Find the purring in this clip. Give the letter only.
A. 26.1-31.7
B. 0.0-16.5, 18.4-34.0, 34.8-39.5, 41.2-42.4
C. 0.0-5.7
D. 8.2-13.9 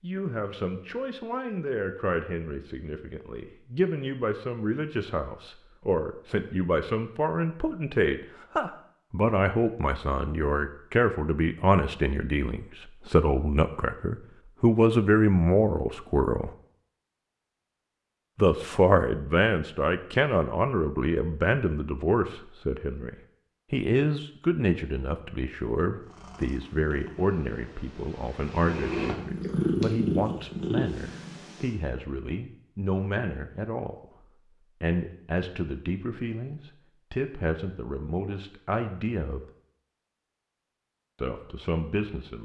A.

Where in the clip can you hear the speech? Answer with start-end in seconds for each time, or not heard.
0.0-16.5, 18.4-34.0, 34.8-39.5, 41.2-42.4.